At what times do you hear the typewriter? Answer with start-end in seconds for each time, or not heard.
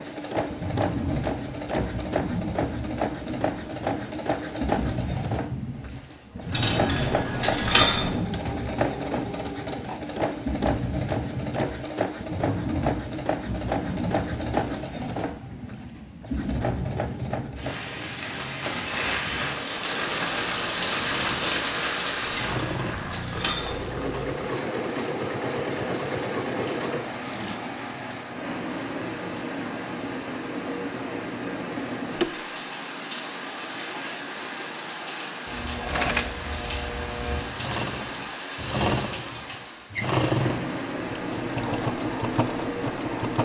not heard.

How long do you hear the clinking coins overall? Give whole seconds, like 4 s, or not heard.
3 s.